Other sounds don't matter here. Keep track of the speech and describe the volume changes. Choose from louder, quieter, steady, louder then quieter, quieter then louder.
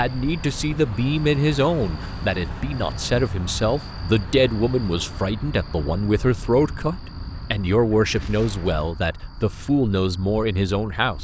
steady.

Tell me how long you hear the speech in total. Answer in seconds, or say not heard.
11 s.